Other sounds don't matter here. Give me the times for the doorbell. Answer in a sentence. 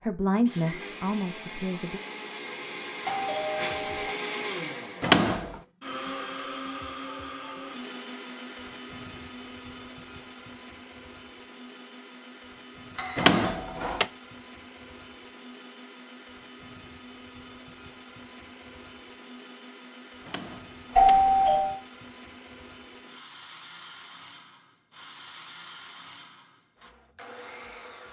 The doorbell can be heard from 3.0 to 4.1 s, from 12.9 to 13.8 s and from 20.9 to 21.8 s.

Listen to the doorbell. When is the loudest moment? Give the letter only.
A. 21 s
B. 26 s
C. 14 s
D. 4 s
A.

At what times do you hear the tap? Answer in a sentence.
You can't hear the tap here.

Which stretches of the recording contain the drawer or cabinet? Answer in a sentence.
The drawer or cabinet can be heard from 5.0 to 5.6 s, from 13.2 to 14.1 s and from 20.2 to 21.4 s.